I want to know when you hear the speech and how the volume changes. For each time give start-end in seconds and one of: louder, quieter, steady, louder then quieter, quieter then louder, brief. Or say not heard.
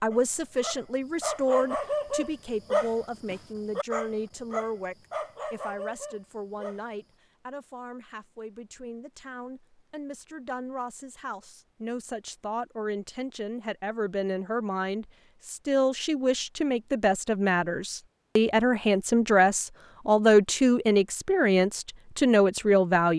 0.0-23.1 quieter then louder.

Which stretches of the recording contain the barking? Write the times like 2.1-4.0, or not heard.
0.1-6.8.